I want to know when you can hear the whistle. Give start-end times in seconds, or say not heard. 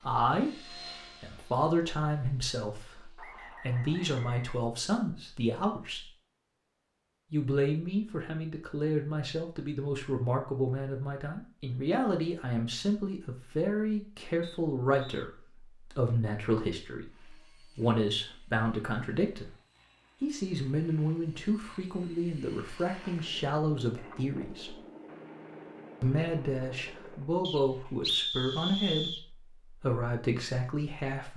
3.1-4.6, 14.4-15.2, 27.4-29.2.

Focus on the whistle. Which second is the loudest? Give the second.
28 s.